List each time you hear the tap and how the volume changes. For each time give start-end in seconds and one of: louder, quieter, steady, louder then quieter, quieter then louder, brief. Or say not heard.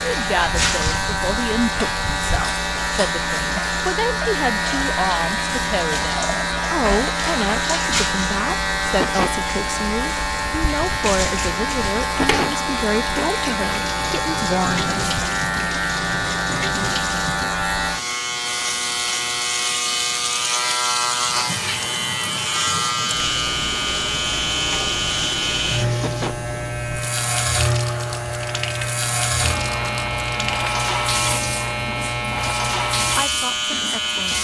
0.0-34.3 steady.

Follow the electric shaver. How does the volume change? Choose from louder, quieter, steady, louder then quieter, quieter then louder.
steady.